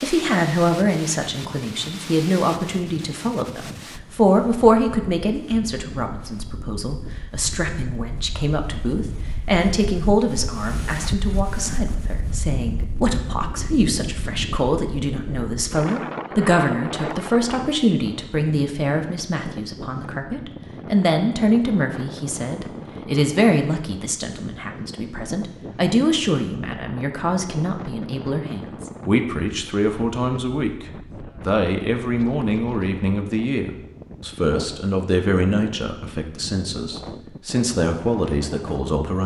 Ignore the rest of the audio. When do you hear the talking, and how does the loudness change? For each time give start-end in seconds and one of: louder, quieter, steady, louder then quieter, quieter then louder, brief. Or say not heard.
0.0-39.2 steady.